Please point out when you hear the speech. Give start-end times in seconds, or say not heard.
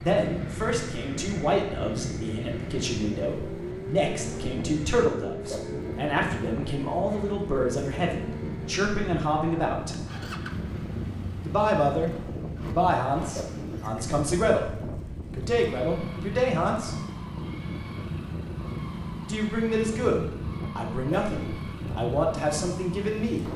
0.0-9.9, 11.4-14.7, 15.3-16.9, 19.2-23.4.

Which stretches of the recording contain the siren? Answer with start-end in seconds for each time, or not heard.
not heard.